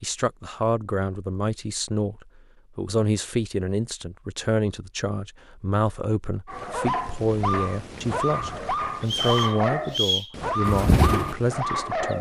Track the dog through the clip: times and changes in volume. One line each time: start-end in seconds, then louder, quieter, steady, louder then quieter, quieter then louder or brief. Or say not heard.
6.5-12.1 steady.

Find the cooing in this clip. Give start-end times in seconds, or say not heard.
10.7-12.1.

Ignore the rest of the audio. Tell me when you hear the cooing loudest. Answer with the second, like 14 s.
11 s.